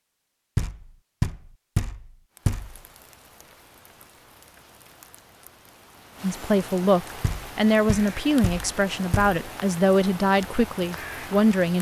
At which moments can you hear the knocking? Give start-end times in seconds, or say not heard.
0.6-2.8, 7.2-9.4.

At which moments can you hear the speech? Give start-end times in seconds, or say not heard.
6.2-11.7.